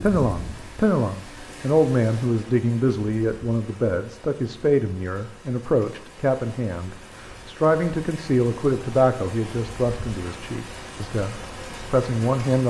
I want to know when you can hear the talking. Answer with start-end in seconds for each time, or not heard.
0.0-12.6.